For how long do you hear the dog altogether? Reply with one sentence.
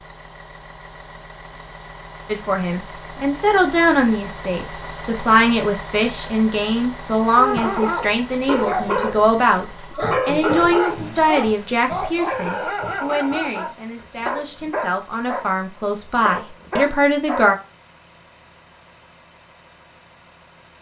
You can hear the dog for 10 seconds altogether.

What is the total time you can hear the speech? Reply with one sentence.
The speech can be heard for 15 seconds in total.